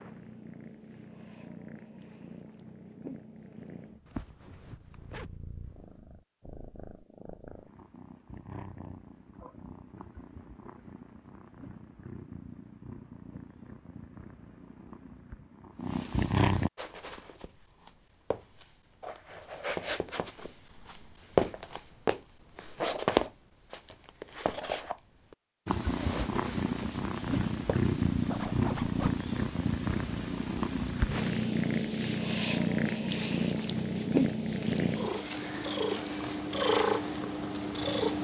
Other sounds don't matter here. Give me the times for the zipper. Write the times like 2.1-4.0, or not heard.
4.0-5.8, 28.2-29.2.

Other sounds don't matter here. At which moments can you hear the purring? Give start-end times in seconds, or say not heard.
0.0-16.7, 25.6-38.1.